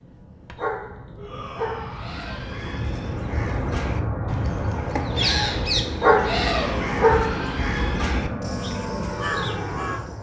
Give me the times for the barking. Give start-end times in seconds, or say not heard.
0.6-2.0, 6.0-7.5.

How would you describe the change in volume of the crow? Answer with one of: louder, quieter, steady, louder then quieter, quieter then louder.
louder then quieter.